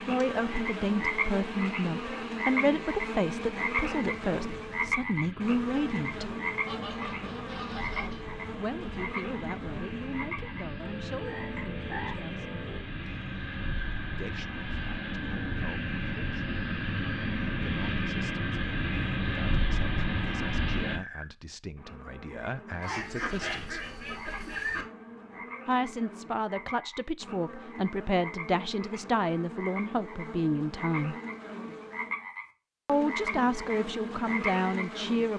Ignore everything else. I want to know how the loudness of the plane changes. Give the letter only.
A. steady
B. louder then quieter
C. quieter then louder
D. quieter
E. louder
E.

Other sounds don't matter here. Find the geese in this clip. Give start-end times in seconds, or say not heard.
6.7-8.2, 22.8-24.9.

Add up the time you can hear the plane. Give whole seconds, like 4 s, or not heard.
21 s.